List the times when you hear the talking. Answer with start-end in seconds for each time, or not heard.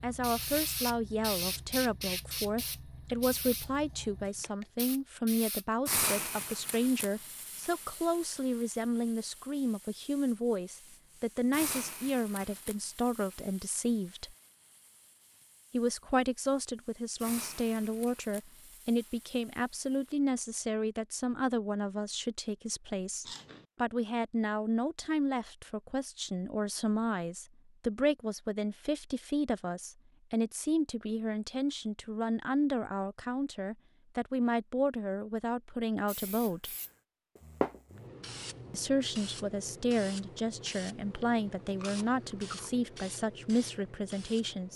0.0-14.3, 15.7-36.7, 38.7-44.7.